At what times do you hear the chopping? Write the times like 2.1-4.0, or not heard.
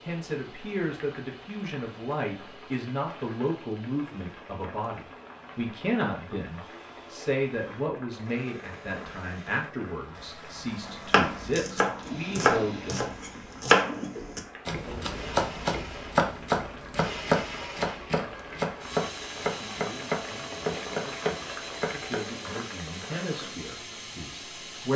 10.8-22.2.